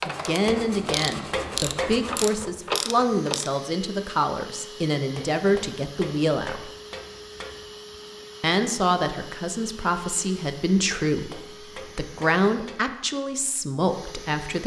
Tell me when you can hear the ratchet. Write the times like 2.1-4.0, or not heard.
0.0-3.5.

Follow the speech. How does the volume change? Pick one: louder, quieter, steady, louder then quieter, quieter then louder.
steady.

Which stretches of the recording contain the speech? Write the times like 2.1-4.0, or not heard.
0.0-6.7, 8.4-14.6.